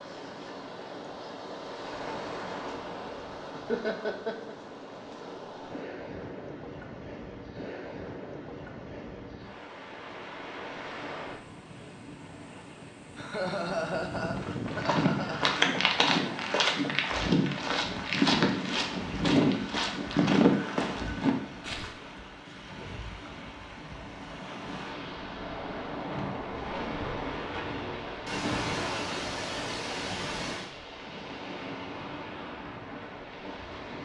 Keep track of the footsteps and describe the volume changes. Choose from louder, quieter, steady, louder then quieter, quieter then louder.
steady.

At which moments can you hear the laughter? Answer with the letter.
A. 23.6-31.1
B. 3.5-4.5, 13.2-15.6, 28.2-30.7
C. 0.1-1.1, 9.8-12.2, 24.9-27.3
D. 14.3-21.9
B.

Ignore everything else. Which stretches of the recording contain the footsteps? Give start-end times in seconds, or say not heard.
14.3-21.9.